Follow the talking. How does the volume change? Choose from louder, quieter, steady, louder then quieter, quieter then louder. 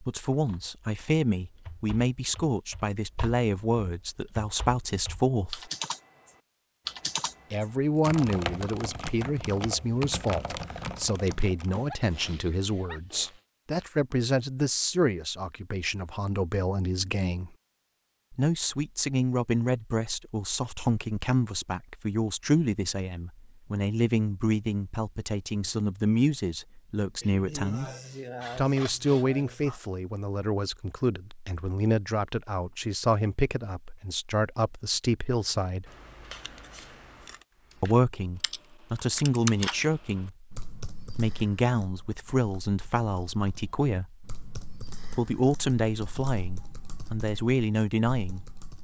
steady.